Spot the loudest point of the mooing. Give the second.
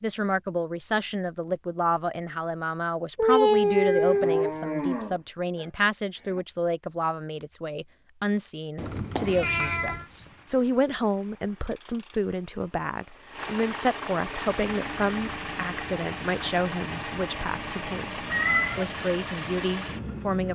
5 s.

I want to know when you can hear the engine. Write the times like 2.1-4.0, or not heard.
8.8-20.4.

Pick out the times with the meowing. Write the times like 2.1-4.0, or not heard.
3.1-4.5, 8.8-10.1, 18.3-18.9.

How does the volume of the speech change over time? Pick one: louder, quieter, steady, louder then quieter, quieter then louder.
steady.